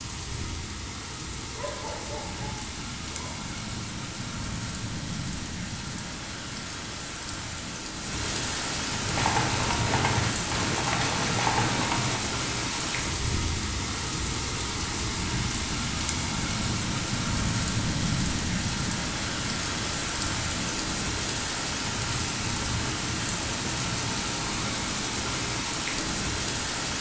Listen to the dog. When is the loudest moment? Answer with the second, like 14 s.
2 s.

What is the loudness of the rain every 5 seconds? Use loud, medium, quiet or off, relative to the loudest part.
medium, loud, loud, loud, loud, loud.